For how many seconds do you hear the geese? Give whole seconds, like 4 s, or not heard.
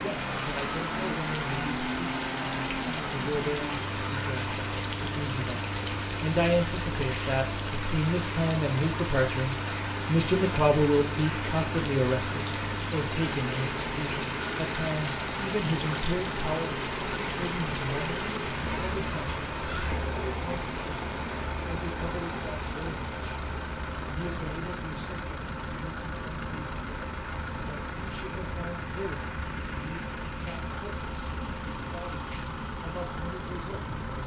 not heard.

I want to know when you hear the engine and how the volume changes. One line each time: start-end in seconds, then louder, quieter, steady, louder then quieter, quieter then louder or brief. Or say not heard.
0.0-34.2 steady.